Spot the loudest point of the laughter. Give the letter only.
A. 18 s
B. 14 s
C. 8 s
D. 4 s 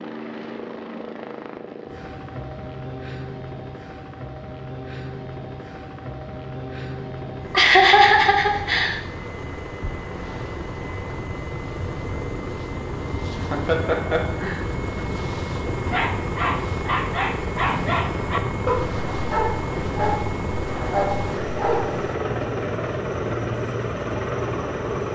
C.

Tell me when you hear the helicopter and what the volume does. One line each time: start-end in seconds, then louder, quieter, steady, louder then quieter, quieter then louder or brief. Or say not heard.
0.0-25.0 louder.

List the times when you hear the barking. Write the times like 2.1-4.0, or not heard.
15.8-22.1.